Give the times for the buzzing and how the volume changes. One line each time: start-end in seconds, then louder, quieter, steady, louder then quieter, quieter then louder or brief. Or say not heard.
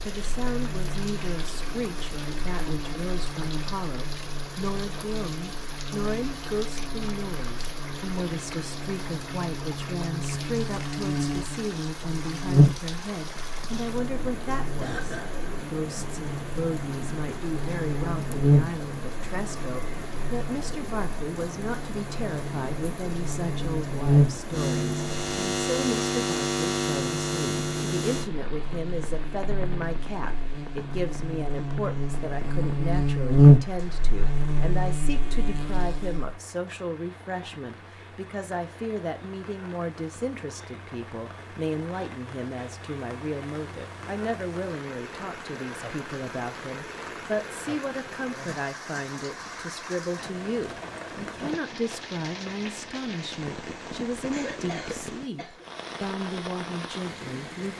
0.1-36.4 louder.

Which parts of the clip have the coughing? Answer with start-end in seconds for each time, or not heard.
14.8-15.4, 54.3-55.6.